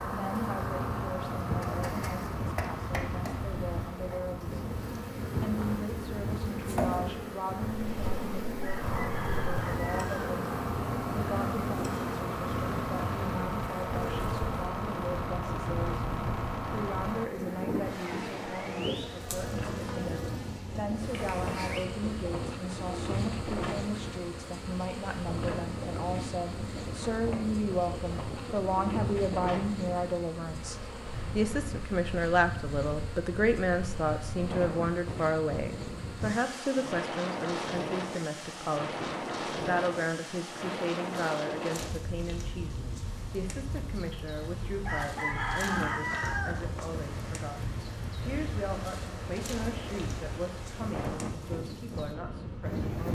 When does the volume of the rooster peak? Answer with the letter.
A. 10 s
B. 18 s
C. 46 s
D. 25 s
C.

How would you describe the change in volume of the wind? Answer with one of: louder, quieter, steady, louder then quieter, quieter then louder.
steady.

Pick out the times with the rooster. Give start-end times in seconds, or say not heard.
8.6-10.2, 44.8-46.6.